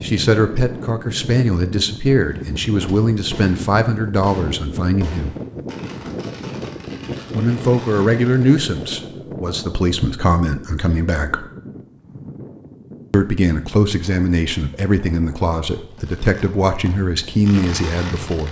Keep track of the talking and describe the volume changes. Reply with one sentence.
The volume of the talking stays about the same.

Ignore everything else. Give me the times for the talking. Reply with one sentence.
You can hear the talking from 0.0 to 5.3 s, from 7.3 to 11.4 s and from 13.1 to 18.4 s.